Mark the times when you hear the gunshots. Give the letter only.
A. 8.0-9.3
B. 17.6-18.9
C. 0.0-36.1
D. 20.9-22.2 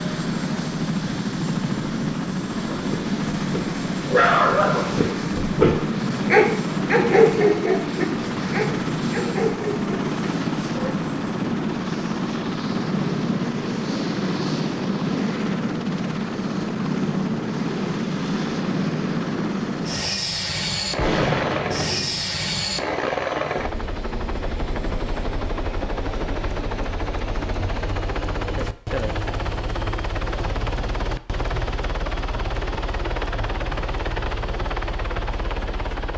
D.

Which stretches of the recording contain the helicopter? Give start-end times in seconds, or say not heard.
0.0-36.1.